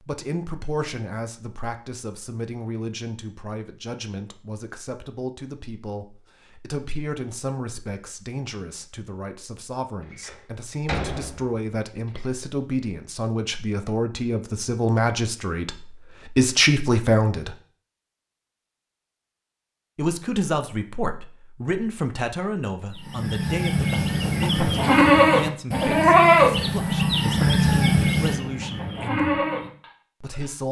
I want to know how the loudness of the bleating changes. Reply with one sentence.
The volume of the bleating goes up, then down.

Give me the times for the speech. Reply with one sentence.
You can hear the speech from 0.0 to 17.6 s, from 19.9 to 29.4 s and from 30.2 to 30.6 s.